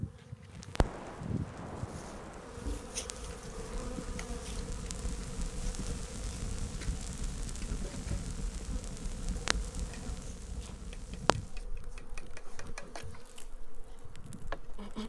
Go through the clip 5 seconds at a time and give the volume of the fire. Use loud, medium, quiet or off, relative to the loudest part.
loud, loud, medium.